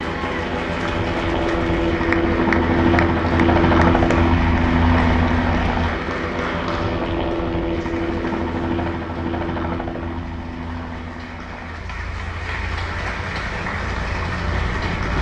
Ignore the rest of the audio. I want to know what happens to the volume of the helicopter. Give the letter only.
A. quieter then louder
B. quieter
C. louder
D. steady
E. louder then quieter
B.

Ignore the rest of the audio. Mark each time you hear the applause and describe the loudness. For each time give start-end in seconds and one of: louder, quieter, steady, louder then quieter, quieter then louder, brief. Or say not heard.
0.0-15.1 quieter then louder.